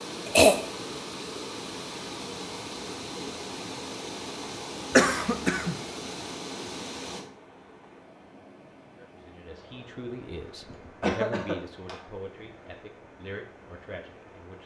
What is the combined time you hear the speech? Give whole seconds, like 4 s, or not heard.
6 s.